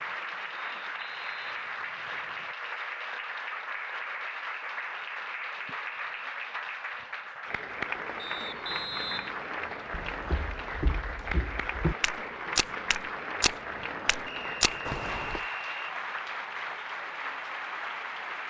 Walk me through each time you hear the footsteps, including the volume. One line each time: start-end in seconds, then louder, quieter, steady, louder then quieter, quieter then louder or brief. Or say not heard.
9.9-15.4 louder.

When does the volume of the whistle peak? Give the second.
9 s.